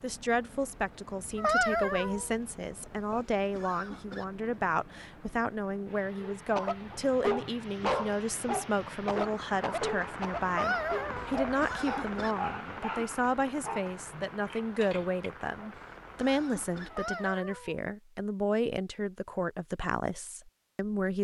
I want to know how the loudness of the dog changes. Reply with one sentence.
The loudness of the dog goes down.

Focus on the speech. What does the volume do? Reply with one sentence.
The volume of the speech stays about the same.